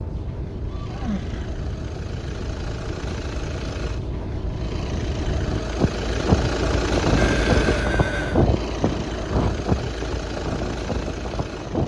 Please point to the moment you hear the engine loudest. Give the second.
7 s.